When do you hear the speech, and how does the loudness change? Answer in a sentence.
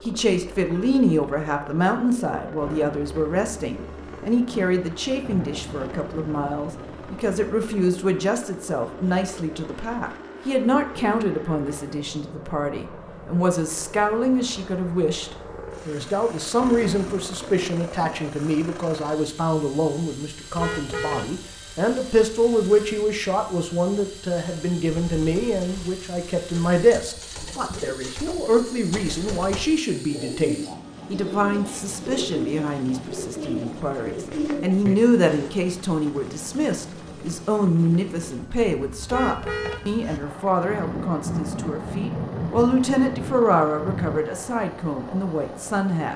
The speech can be heard from 0.1 to 46.1 s, at a steady volume.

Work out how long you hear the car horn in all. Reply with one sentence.
The car horn can be heard for 2 seconds in total.